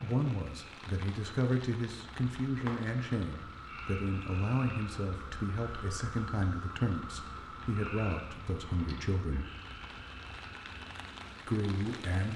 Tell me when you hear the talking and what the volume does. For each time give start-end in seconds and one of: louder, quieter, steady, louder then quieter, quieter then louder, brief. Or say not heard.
0.0-9.4 steady
11.4-12.3 brief.